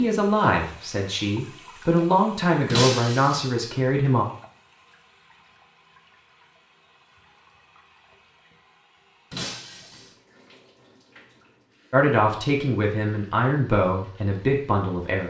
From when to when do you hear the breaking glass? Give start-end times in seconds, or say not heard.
2.7-3.5, 9.3-10.2.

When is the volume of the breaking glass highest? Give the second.
3 s.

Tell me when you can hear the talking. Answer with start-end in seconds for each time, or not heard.
0.0-4.2, 11.9-15.2.